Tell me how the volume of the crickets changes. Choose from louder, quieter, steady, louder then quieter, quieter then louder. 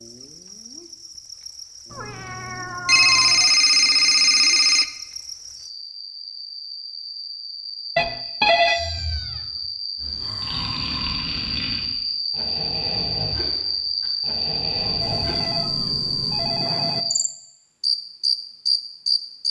louder.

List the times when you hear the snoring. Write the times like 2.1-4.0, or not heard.
10.0-15.5.